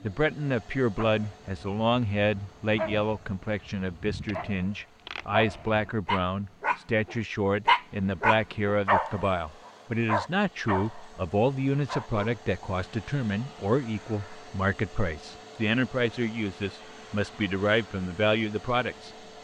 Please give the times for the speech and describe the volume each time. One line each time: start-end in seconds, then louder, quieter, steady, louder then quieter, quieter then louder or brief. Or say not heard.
0.0-19.1 steady.